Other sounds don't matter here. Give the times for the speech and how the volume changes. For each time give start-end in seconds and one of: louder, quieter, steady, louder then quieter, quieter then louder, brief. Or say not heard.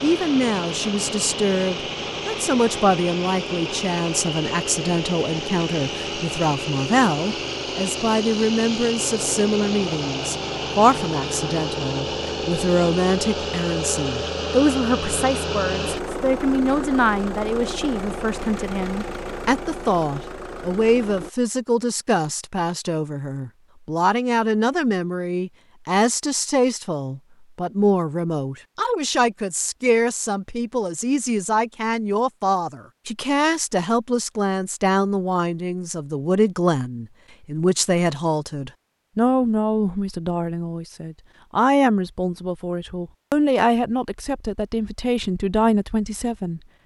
0.0-46.6 steady.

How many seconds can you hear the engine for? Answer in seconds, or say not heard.
21 s.